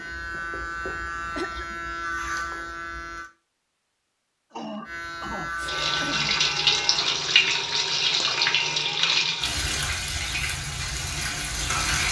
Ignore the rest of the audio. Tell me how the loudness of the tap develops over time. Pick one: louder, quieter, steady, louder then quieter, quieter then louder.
quieter.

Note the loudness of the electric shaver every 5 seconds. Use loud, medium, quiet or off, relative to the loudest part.
loud, loud, off.